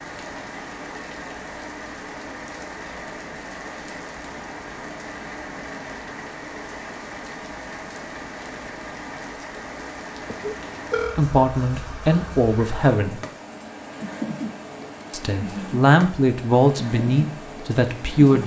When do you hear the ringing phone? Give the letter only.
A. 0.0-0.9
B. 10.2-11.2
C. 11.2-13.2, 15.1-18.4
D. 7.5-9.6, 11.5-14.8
B.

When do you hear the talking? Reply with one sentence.
You can hear the talking from 11.2 to 13.2 s and from 15.1 to 18.4 s.